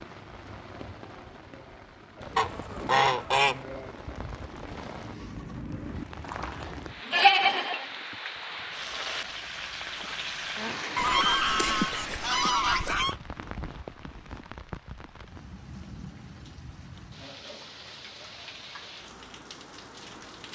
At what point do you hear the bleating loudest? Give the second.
7 s.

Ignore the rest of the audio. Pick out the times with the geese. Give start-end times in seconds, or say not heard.
2.4-3.6, 10.9-13.2.